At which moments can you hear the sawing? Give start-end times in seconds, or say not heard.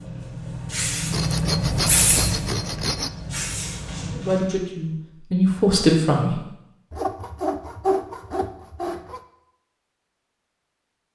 1.1-3.1, 6.9-9.2.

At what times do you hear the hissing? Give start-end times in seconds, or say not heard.
0.0-4.5.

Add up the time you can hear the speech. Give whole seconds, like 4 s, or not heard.
2 s.